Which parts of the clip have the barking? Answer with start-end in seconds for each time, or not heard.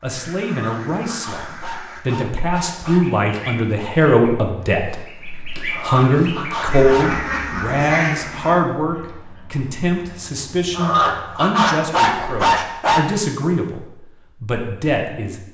0.4-3.2, 5.7-7.2, 10.8-13.1.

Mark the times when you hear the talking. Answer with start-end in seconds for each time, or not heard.
0.0-15.4.